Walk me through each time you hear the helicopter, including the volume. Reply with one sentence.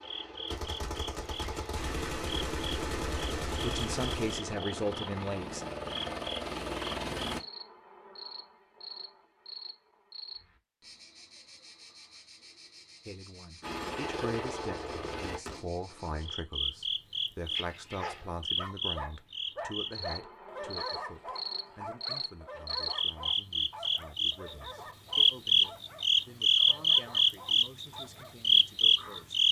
The helicopter can be heard from 0.0 to 7.4 s, getting louder; and briefly from 13.6 to 15.4 s.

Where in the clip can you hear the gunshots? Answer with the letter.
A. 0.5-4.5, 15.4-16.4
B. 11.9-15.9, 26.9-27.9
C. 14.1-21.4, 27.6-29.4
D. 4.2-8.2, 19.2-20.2
A.